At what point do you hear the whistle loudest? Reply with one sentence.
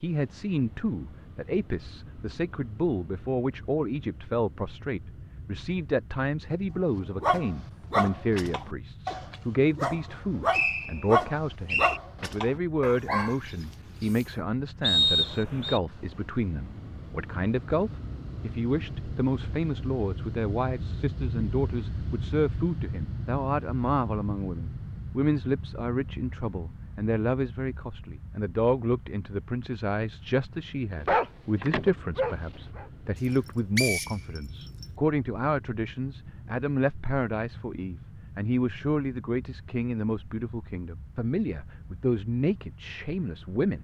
The loudest moment of the whistle is at 15 seconds.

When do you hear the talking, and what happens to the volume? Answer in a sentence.
You can hear the talking from 0.0 to 43.7 s, at a steady volume.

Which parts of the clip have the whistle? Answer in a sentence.
The whistle can be heard from 10.5 to 12.0 s, from 14.8 to 15.8 s and from 33.8 to 34.9 s.